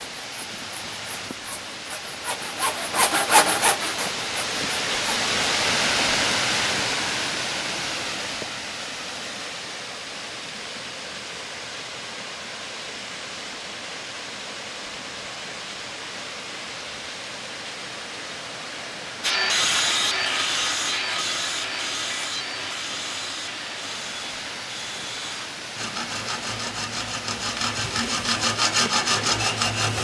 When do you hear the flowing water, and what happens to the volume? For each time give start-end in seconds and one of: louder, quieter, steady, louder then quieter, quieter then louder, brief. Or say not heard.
0.0-29.9 quieter.